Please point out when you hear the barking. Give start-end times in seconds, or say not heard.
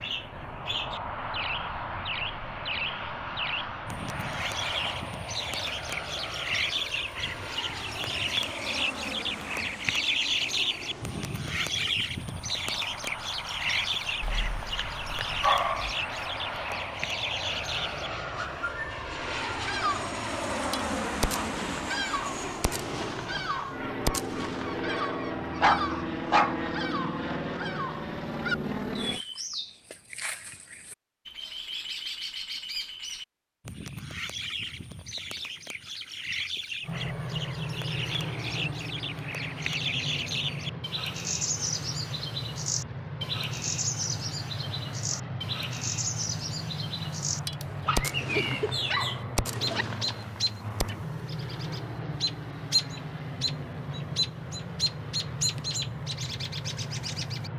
14.2-15.9, 25.6-26.6, 47.9-49.9.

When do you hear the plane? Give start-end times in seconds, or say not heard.
0.0-29.2, 36.8-57.5.